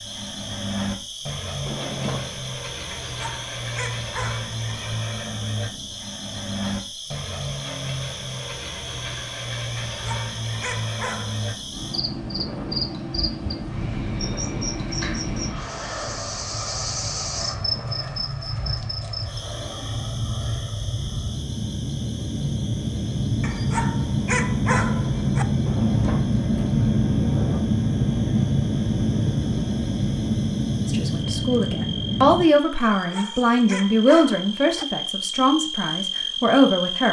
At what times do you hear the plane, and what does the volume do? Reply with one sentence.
The plane can be heard from 0.0 to 32.5 s, getting louder.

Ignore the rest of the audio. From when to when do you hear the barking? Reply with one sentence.
You can hear the barking from 2.9 to 4.5 s, from 9.8 to 11.7 s, from 23.4 to 25.4 s and from 32.8 to 34.9 s.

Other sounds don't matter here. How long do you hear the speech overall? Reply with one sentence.
You can hear the speech for 6 seconds altogether.